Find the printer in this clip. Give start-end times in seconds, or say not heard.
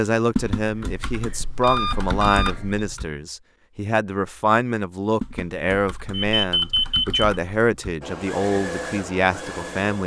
8.0-10.0.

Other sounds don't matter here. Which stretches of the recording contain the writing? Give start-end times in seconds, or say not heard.
not heard.